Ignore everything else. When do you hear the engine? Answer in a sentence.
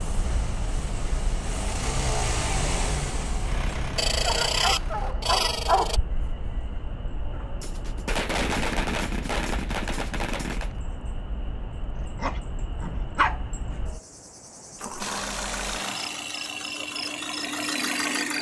You can hear the engine from 0.0 to 5.2 s and from 14.9 to 18.3 s.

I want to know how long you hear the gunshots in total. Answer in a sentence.
The gunshots can be heard for 3 seconds in total.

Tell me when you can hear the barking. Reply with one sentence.
You can hear the barking from 4.0 to 6.0 s and from 11.9 to 13.4 s.